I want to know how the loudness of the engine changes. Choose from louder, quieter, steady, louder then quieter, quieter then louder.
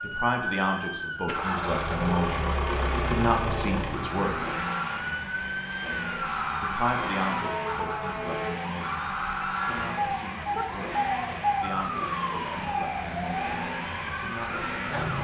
quieter.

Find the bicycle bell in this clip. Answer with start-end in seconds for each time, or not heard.
0.3-1.4, 9.5-10.7.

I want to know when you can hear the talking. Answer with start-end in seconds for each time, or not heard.
0.0-4.3, 6.6-10.9, 11.6-14.9.